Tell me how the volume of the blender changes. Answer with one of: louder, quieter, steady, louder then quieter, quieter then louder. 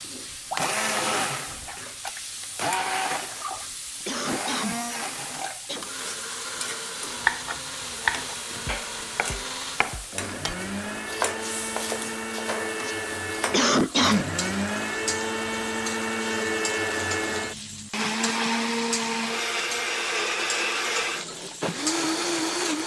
quieter then louder.